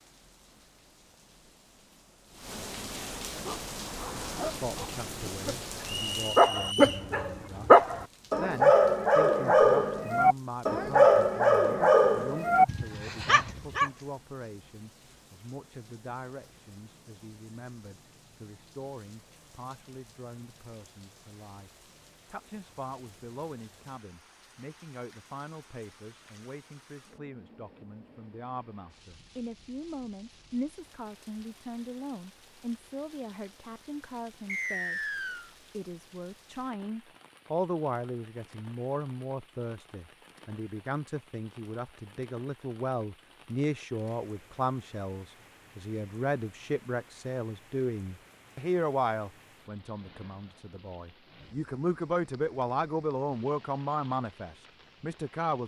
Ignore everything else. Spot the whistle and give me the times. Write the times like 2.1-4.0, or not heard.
5.8-7.0, 34.5-35.5.